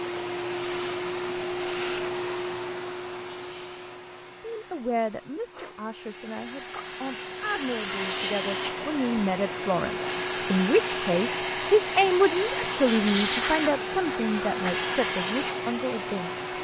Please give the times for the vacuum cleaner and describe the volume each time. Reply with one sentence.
The vacuum cleaner can be heard from 0.0 to 16.5 s, getting quieter then louder.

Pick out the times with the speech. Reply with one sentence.
You can hear the speech from 4.4 to 16.3 s.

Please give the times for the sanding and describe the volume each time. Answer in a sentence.
You can't hear the sanding here.